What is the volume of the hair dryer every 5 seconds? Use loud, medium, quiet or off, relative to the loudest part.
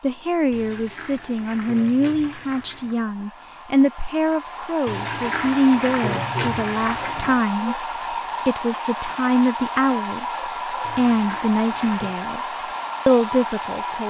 medium, loud, loud.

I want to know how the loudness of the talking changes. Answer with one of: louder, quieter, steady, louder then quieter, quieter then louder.
steady.